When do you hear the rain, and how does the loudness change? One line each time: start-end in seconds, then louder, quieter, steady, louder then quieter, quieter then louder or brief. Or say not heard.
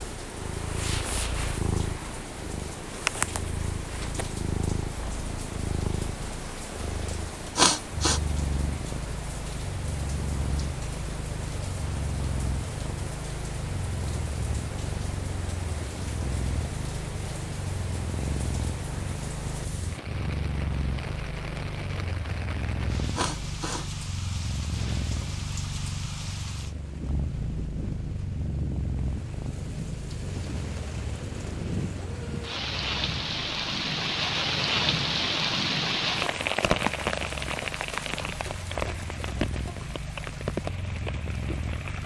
0.0-42.0 louder.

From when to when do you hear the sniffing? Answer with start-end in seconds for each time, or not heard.
7.5-8.2, 23.1-23.9.